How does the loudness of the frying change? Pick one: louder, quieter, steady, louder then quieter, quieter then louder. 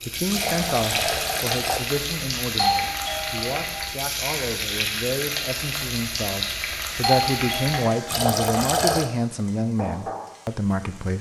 quieter.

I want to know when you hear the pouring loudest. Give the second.
9 s.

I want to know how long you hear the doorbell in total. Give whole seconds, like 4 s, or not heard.
2 s.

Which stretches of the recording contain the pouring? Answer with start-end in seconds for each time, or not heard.
0.2-1.8, 8.1-9.1.